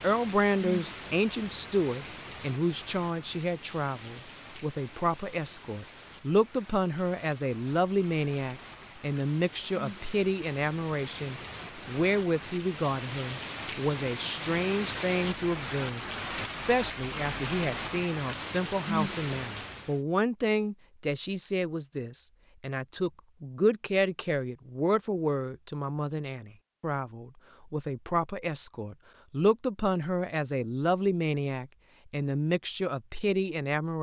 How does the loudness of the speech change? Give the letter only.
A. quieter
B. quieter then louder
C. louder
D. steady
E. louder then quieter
D.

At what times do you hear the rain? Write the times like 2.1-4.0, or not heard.
0.0-20.0.